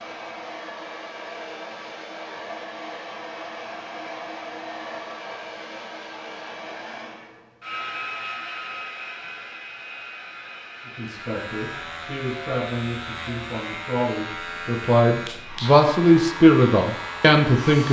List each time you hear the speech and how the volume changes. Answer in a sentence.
You can hear the speech from 10.8 to 17.8 s, getting louder.